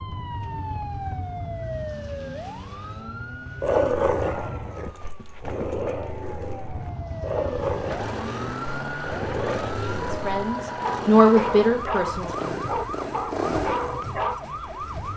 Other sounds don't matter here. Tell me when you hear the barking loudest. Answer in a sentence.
The volume of the barking peaks at 4 seconds.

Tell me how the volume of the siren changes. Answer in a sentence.
The loudness of the siren goes down, then up.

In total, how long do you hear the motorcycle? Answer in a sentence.
The motorcycle can be heard for 13 seconds in total.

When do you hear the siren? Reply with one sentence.
The siren can be heard from 0.0 to 15.1 s.